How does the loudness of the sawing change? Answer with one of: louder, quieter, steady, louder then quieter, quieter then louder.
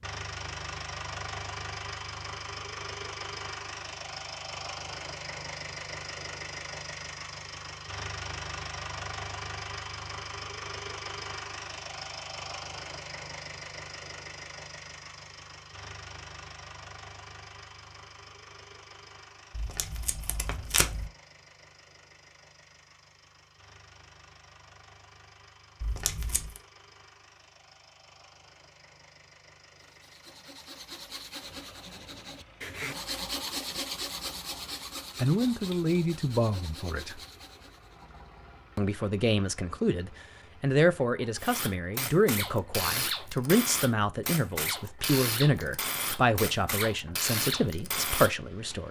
louder then quieter.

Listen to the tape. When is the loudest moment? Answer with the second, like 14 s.
21 s.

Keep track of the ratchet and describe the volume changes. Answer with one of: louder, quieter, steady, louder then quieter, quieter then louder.
steady.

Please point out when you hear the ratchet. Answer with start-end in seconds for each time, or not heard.
41.4-48.8.